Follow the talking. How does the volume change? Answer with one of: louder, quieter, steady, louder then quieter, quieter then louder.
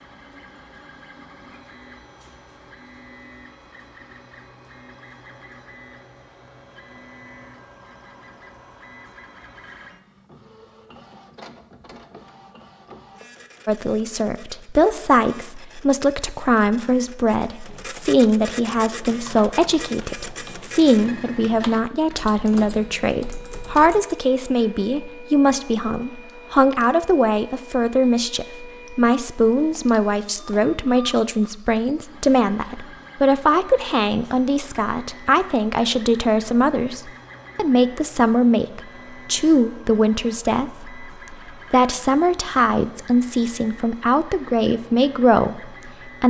steady.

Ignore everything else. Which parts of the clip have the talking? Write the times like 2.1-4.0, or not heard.
13.7-46.2.